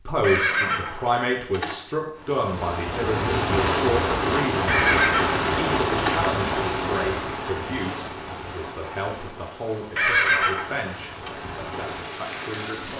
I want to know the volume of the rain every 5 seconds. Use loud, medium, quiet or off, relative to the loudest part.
loud, loud, medium.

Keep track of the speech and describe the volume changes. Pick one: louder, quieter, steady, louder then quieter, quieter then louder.
quieter.